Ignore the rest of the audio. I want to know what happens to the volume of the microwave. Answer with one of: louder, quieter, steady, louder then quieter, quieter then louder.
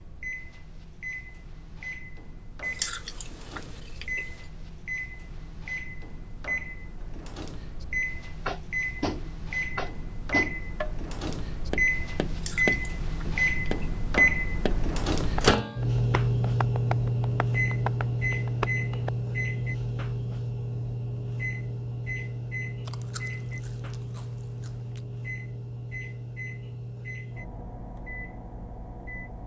louder then quieter.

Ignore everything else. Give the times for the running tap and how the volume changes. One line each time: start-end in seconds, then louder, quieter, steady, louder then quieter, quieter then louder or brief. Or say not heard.
not heard.